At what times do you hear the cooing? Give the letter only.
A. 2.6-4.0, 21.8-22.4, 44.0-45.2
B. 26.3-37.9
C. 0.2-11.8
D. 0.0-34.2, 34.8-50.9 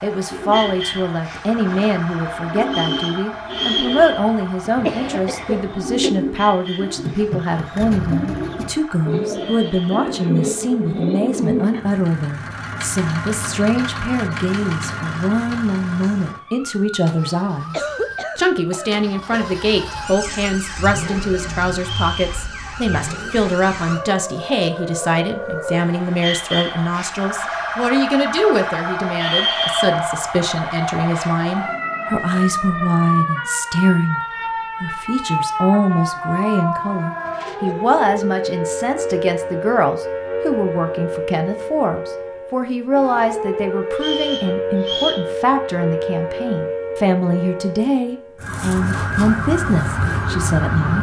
C.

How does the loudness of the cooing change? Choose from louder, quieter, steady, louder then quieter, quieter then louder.
louder.